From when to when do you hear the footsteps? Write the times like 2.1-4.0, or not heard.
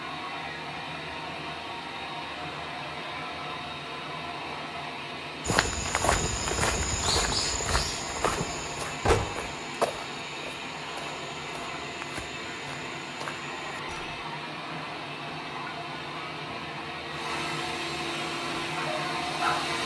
5.5-14.0.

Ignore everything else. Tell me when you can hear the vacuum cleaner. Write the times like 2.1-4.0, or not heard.
0.0-19.8.